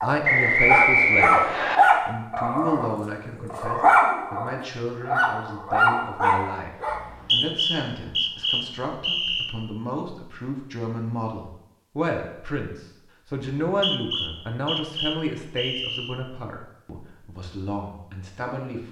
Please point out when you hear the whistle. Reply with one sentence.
You can hear the whistle from 0.2 to 1.8 s, from 6.9 to 9.6 s and from 13.7 to 16.1 s.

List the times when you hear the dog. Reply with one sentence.
You can hear the dog from 0.0 to 7.0 s.